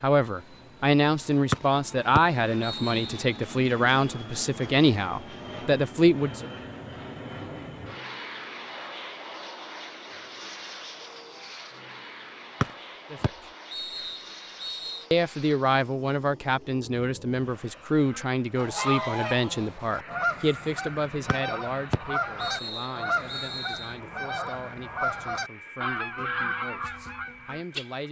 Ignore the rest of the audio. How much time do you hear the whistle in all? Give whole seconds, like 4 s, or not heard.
7 s.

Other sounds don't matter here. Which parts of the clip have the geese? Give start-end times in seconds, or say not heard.
18.1-27.9.